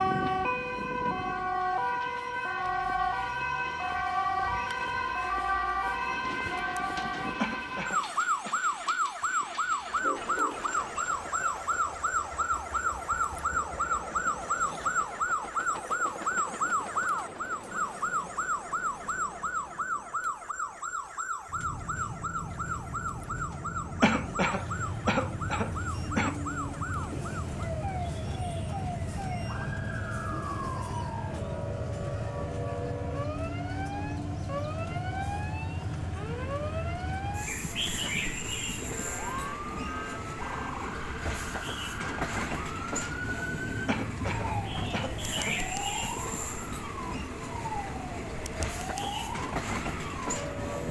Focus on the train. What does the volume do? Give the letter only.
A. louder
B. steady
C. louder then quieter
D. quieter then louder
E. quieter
A.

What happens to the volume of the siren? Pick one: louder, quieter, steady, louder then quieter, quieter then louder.
quieter.